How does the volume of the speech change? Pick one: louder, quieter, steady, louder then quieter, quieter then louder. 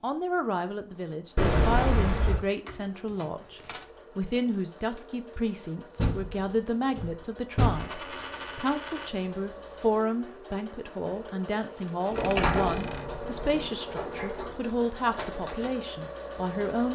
steady.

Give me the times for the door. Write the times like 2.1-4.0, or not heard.
1.4-2.4, 6.0-7.8, 12.1-14.6.